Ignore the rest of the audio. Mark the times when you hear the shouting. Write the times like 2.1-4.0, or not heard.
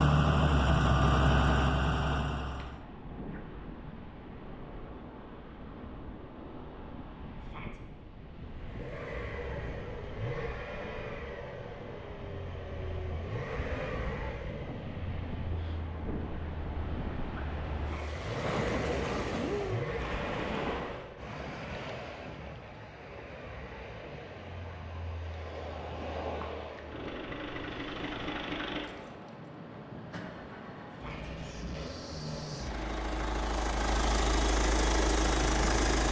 7.3-7.8, 17.8-18.2, 30.9-31.3.